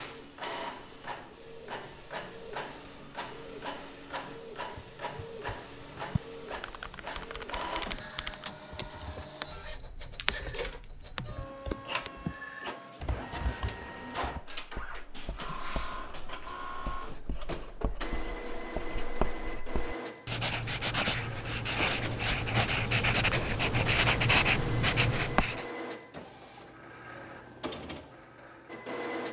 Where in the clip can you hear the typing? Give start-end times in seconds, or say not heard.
4.7-14.4.